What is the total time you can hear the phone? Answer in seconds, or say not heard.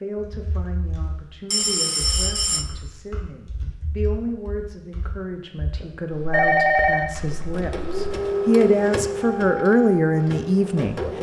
2 s.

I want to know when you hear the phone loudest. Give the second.
7 s.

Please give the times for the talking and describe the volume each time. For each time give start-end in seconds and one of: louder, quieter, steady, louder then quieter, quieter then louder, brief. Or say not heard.
0.0-11.1 louder.